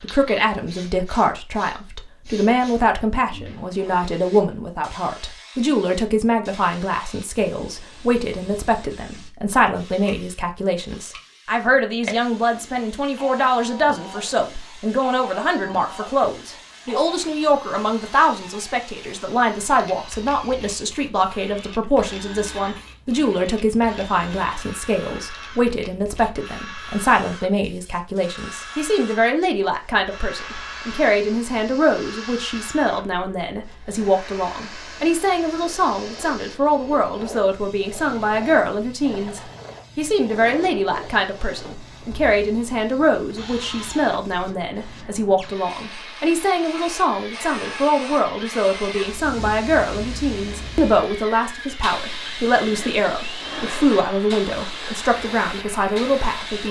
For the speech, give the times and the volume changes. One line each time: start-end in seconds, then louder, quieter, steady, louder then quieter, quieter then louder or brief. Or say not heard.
0.0-56.6 steady.